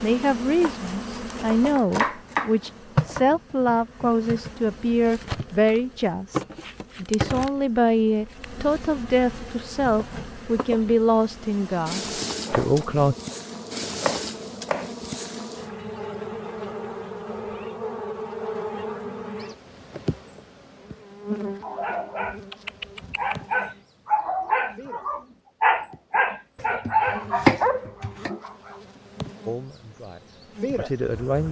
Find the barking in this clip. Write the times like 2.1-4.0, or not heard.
21.6-28.8.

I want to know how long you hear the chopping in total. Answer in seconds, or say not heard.
7 s.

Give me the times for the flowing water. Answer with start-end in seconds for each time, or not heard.
not heard.